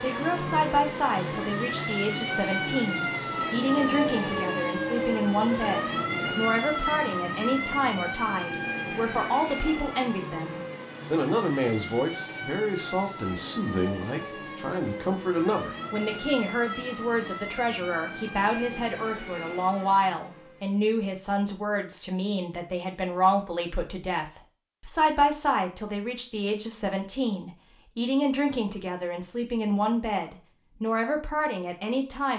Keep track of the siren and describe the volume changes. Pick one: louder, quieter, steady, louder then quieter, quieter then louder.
quieter.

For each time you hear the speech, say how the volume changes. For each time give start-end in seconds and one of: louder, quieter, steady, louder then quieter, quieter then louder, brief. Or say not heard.
0.0-32.3 steady.